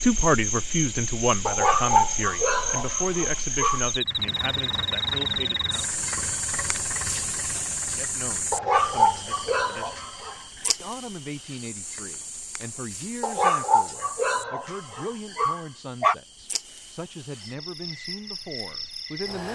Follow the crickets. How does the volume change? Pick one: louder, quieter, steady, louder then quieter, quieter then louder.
quieter.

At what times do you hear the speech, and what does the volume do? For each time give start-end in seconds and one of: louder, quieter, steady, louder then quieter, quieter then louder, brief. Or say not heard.
0.0-6.0 quieter
7.8-9.9 brief
10.8-19.5 steady.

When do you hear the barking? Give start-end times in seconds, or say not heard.
1.4-3.9, 8.5-10.7, 13.2-16.1.